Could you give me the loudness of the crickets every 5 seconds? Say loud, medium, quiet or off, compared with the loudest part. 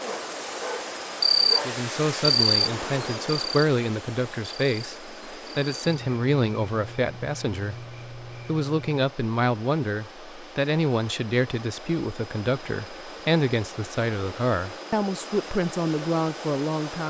loud, quiet, off, off.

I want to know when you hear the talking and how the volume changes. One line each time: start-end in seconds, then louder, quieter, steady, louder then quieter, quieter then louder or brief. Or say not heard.
1.6-17.0 steady.